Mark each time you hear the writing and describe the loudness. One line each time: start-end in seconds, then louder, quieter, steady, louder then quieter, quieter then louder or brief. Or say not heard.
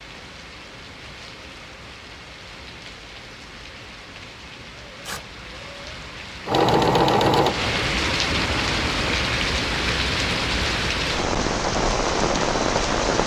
not heard.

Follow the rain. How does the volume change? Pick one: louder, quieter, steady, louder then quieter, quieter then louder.
louder.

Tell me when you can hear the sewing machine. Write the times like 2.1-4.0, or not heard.
6.5-9.2.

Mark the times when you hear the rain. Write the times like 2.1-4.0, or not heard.
0.0-13.2.